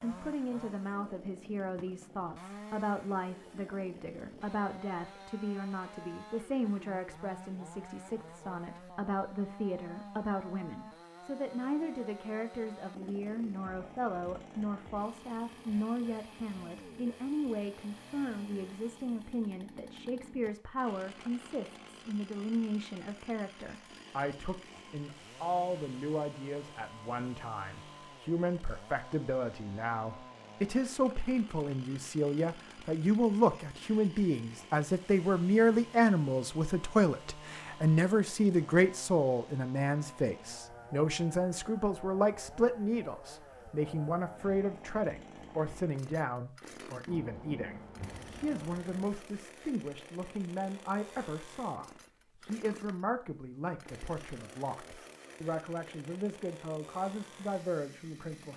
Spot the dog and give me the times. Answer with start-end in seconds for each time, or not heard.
not heard.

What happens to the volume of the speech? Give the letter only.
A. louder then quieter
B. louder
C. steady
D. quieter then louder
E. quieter
A.